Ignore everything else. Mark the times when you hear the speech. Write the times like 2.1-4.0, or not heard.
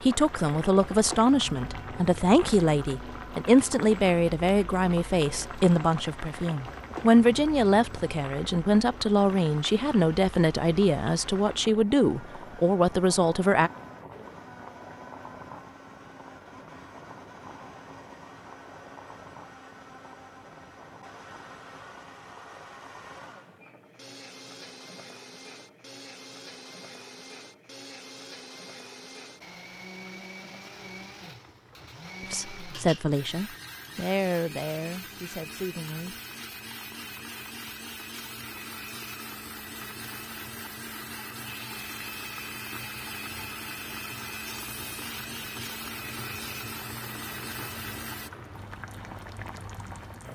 0.0-13.7, 32.2-36.2.